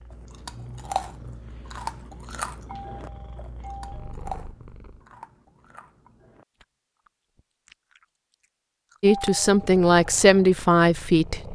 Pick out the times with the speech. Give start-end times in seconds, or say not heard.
9.0-11.5.